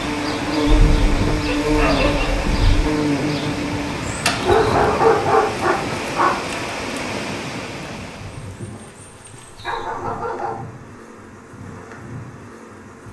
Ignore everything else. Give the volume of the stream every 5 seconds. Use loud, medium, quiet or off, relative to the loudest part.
loud, loud, off.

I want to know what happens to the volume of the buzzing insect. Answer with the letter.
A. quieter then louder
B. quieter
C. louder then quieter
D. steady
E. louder
B.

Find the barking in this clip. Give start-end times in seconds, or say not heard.
0.7-2.8, 4.4-6.3, 9.4-10.8.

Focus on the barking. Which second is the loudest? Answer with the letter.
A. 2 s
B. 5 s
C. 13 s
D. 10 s
B.